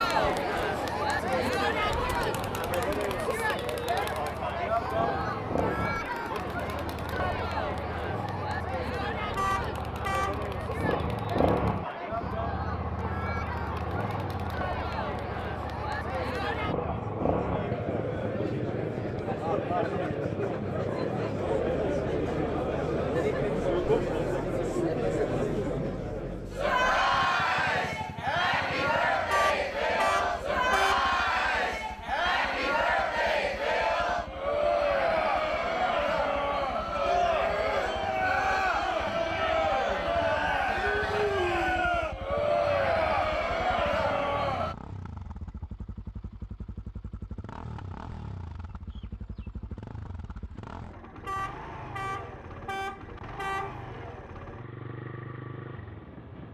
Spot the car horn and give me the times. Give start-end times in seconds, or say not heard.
9.3-10.3, 29.3-31.1, 51.2-53.8.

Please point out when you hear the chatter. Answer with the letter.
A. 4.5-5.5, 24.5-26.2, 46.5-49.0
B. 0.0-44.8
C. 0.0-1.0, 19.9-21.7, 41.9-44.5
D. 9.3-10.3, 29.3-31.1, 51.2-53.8
B.